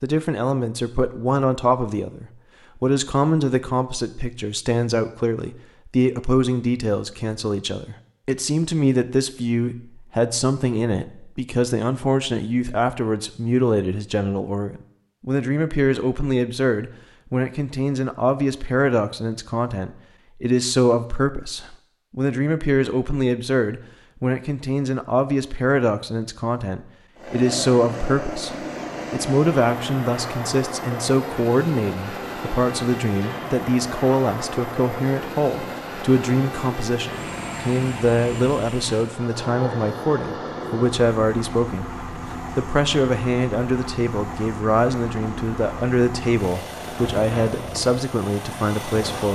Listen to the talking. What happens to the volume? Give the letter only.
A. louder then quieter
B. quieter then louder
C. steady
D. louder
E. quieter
C.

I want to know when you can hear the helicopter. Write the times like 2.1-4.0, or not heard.
27.1-49.3.